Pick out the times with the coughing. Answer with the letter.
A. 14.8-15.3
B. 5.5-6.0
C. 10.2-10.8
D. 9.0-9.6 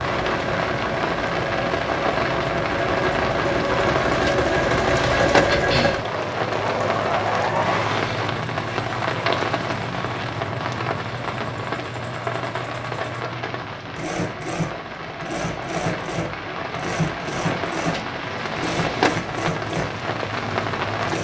B.